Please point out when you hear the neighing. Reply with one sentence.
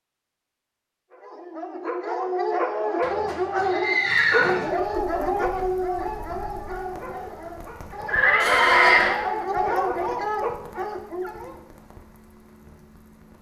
You can hear the neighing from 3.0 to 4.7 s and from 8.1 to 9.2 s.